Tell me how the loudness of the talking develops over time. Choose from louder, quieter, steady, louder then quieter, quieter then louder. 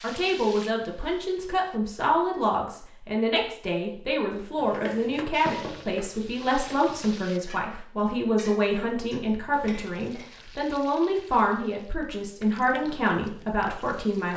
steady.